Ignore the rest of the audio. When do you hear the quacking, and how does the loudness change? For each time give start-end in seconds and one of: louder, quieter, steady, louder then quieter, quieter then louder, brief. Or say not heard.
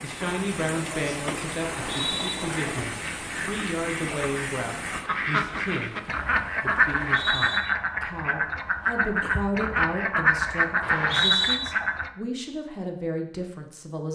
2.5-12.1 louder.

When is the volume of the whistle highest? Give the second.
11 s.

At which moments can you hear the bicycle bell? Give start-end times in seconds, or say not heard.
1.8-3.0.